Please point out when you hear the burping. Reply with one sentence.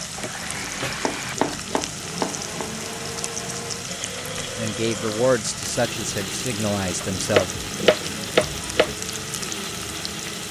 The burping can't be heard in this clip.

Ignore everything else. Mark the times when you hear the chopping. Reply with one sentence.
The chopping can be heard from 1.0 to 2.6 s and from 7.0 to 8.9 s.